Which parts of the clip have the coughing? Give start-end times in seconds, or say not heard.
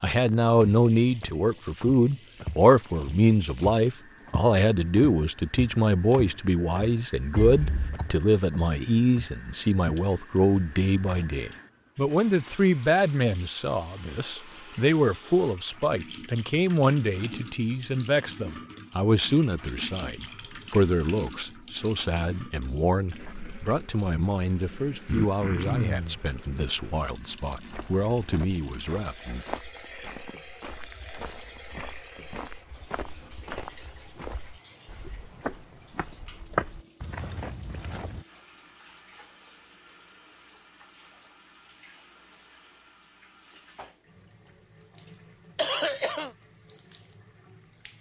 7.3-8.1, 25.1-26.2, 45.5-46.3.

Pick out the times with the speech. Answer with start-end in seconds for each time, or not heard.
0.0-29.4.